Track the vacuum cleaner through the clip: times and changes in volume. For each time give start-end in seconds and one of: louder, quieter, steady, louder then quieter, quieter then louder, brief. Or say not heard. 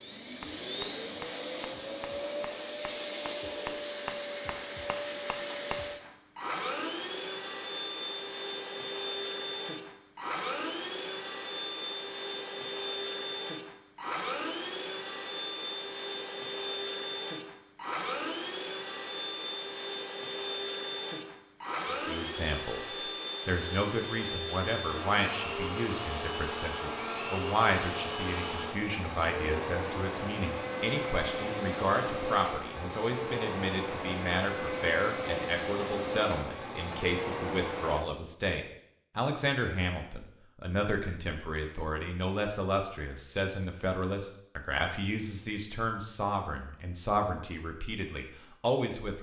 0.0-38.0 steady.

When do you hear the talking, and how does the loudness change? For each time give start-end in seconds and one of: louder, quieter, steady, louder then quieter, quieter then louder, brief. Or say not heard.
21.9-49.1 steady.